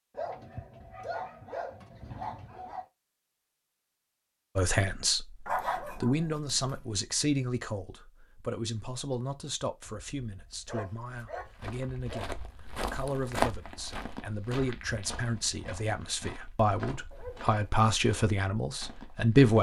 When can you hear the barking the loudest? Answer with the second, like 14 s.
6 s.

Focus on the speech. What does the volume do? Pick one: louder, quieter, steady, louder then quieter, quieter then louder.
quieter then louder.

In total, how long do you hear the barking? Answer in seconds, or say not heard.
7 s.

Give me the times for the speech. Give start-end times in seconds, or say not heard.
4.5-19.5.